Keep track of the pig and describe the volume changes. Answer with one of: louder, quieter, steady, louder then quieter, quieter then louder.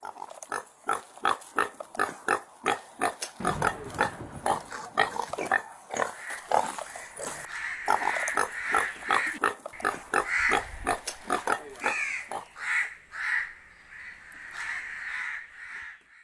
steady.